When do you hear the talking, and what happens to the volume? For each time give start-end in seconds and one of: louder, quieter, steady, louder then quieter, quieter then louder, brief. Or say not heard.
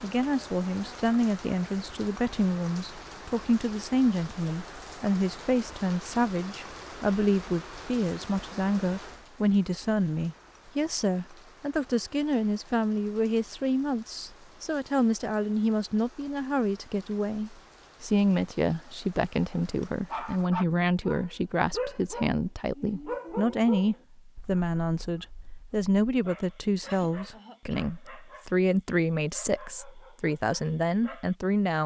0.0-31.8 steady.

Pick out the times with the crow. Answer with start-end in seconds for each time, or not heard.
not heard.